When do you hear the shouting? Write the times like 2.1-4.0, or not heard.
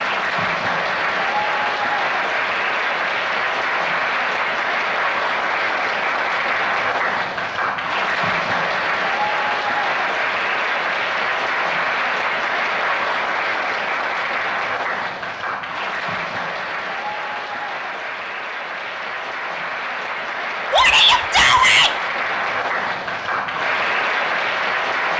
20.7-21.9.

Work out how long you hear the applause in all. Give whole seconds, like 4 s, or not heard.
25 s.